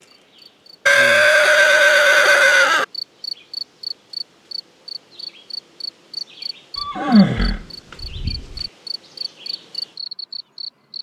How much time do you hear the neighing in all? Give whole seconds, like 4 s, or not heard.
4 s.